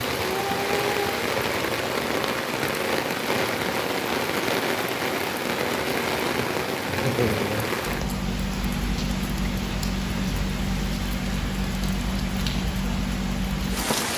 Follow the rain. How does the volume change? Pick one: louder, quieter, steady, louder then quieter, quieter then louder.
steady.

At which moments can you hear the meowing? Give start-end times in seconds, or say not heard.
0.2-1.1.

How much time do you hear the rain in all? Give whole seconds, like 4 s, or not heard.
14 s.